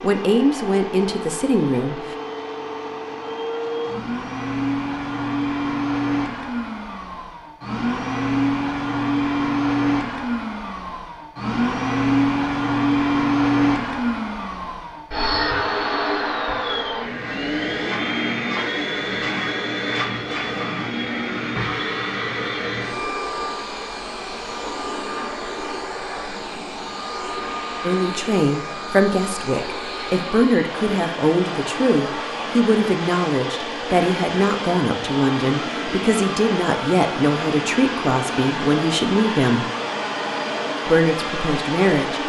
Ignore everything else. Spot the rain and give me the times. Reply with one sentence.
You can't hear the rain here.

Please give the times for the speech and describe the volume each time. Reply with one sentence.
The speech can be heard briefly from 0.0 to 2.1 s; from 27.8 to 39.6 s, at a steady volume; and briefly from 40.9 to 42.2 s.